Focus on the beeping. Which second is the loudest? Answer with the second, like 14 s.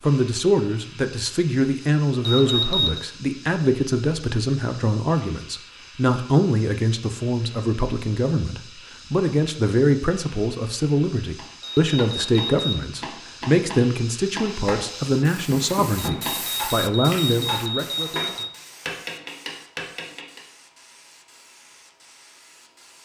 3 s.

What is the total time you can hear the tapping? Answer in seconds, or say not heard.
9 s.